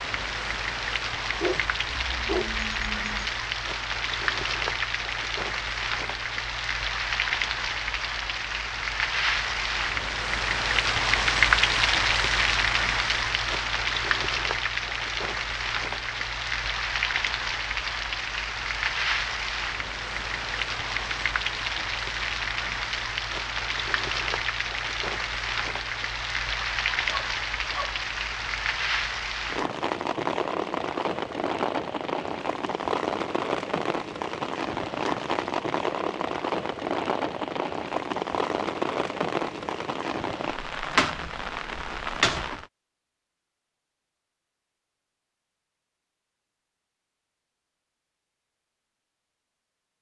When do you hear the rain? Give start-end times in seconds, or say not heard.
0.0-42.6.